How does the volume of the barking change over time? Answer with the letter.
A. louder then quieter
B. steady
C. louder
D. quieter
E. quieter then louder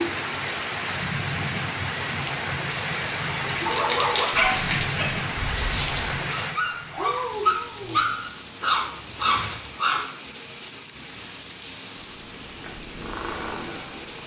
E.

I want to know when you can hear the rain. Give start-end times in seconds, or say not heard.
0.0-14.2.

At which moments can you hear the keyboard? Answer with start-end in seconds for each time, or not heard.
not heard.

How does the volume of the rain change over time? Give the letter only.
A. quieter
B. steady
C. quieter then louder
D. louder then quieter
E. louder
A.